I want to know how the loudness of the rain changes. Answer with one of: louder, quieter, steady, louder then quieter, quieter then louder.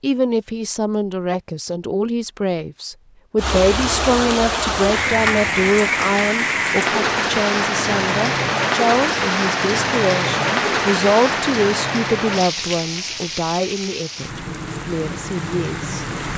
quieter.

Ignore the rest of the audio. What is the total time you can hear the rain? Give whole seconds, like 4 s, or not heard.
13 s.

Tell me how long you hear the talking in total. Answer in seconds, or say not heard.
16 s.